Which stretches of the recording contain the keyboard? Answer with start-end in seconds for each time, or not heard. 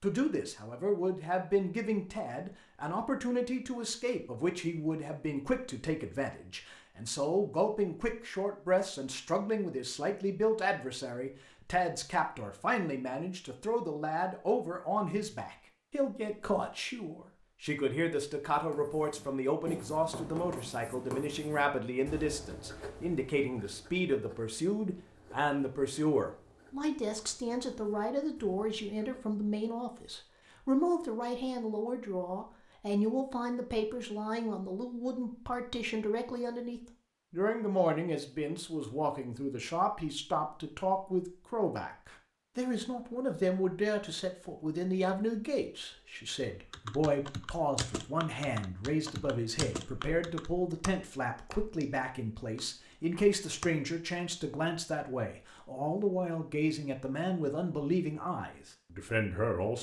46.7-53.8.